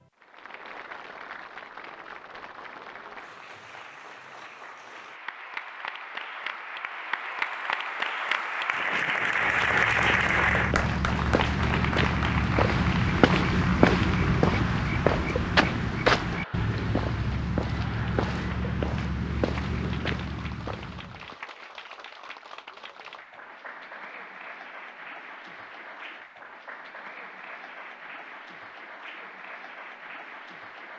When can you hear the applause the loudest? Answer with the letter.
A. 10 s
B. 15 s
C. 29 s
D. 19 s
A.